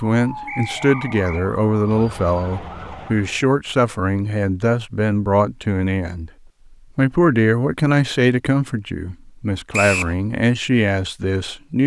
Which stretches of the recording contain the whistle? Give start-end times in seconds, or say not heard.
0.5-1.4, 9.7-10.2.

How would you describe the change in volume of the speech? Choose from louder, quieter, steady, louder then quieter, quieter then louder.
steady.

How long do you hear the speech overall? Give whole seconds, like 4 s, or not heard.
11 s.